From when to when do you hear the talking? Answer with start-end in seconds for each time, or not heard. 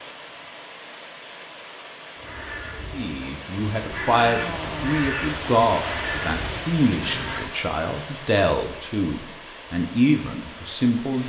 3.0-11.2.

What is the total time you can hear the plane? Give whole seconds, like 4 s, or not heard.
not heard.